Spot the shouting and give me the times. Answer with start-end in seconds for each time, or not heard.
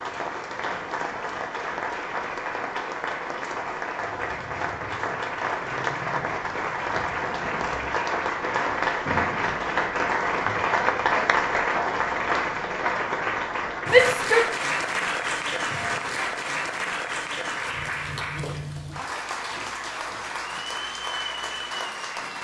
13.8-14.6.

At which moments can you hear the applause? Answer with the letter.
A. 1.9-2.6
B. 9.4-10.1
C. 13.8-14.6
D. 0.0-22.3
D.